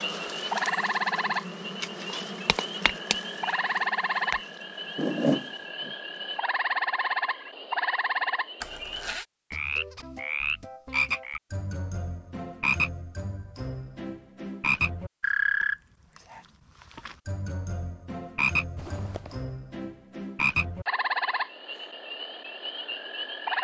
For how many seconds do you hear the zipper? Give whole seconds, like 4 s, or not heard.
2 s.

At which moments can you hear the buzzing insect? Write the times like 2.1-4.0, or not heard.
0.0-6.4.